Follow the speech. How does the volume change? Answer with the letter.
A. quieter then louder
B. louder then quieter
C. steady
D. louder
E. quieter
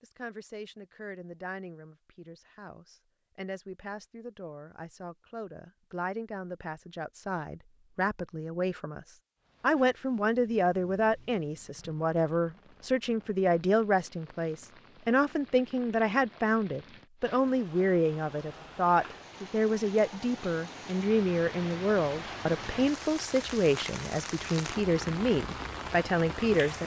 D.